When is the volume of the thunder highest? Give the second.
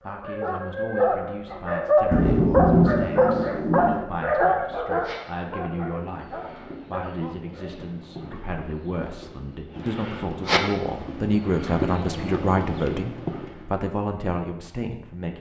3 s.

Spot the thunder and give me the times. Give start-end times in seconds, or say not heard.
2.1-4.0.